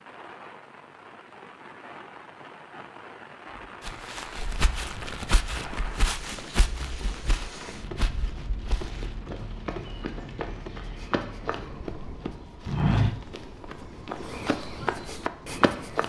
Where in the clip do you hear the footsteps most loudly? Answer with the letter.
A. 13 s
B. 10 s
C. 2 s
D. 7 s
A.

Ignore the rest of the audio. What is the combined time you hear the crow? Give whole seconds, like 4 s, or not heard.
not heard.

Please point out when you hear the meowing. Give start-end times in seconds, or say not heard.
not heard.